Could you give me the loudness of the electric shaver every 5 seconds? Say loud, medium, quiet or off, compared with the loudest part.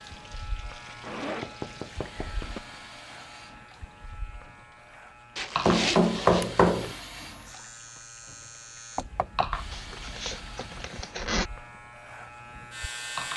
medium, medium, loud.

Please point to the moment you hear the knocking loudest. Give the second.
6 s.